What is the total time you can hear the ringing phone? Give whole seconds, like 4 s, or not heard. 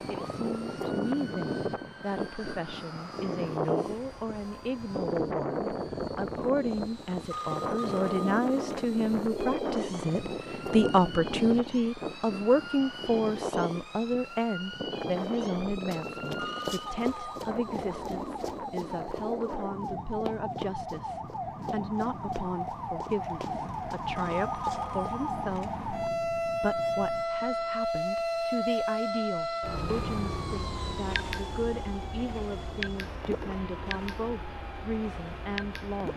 5 s.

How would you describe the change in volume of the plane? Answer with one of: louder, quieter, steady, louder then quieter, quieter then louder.
quieter.